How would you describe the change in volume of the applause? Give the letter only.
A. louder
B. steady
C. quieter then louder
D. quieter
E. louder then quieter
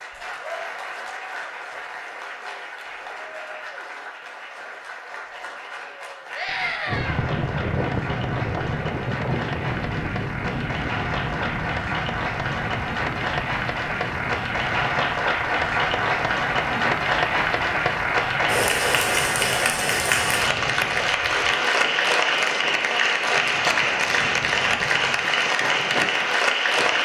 A.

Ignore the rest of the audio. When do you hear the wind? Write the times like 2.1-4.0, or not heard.
6.8-26.9.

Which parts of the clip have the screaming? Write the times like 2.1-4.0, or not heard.
6.3-7.2.